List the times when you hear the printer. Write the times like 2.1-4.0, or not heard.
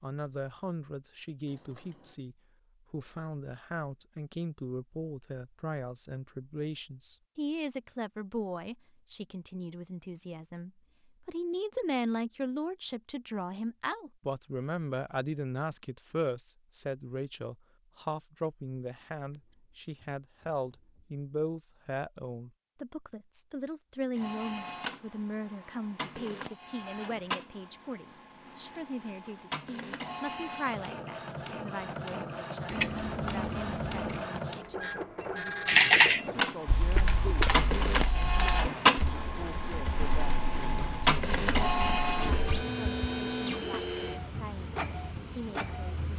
24.1-46.1.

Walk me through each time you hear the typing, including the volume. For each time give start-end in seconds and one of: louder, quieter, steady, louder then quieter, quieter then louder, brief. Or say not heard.
35.6-42.6 quieter.